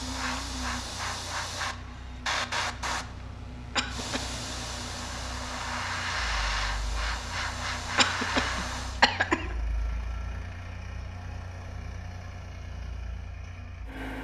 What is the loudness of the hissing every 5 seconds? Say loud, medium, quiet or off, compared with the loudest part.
loud, loud, off.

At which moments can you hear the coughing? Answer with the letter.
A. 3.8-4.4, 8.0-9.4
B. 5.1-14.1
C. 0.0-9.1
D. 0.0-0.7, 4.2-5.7
A.